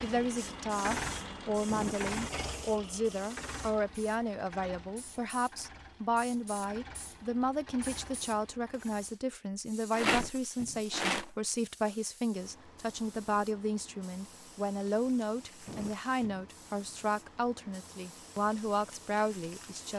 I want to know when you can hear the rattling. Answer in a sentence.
The rattling can be heard from 9.9 to 11.3 s.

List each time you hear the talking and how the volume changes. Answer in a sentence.
The talking can be heard from 0.0 to 19.9 s, at a steady volume.